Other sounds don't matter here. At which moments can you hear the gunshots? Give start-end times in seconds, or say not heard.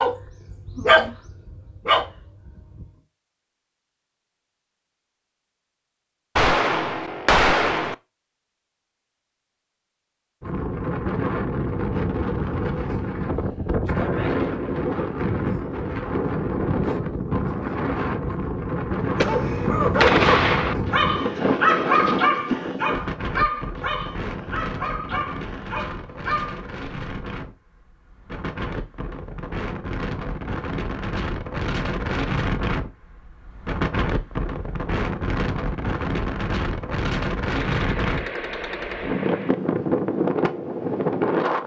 6.3-8.0, 19.1-20.8, 37.5-39.5.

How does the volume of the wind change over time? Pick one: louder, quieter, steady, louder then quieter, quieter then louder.
quieter then louder.